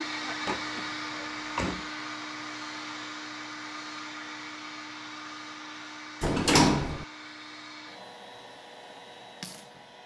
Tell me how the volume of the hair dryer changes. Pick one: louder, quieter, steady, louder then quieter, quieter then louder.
quieter.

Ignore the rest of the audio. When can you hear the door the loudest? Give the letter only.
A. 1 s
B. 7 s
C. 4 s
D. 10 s
B.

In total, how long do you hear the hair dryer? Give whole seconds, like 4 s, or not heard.
10 s.